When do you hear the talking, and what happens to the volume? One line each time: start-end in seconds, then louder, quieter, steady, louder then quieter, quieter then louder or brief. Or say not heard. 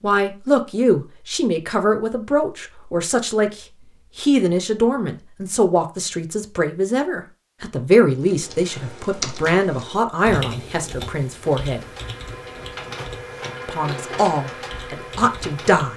0.0-11.8 steady
13.7-15.9 brief.